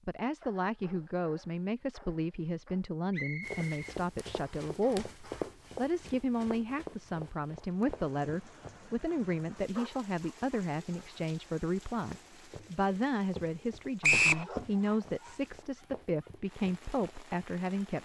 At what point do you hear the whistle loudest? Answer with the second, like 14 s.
14 s.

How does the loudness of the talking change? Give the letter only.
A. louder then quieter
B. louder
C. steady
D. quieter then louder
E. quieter
C.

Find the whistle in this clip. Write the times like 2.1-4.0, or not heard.
3.1-4.7, 14.0-14.4.